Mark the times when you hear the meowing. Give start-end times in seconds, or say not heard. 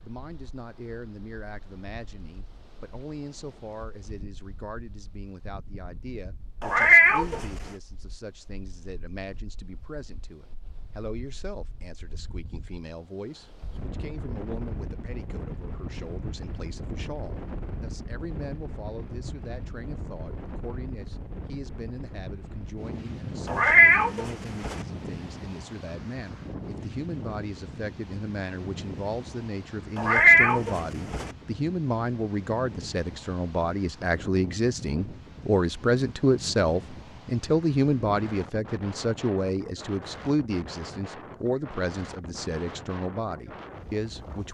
6.6-7.5, 23.4-24.8, 29.9-31.3.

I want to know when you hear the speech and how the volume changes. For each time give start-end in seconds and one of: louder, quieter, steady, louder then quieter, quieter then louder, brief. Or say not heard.
0.0-44.4 louder.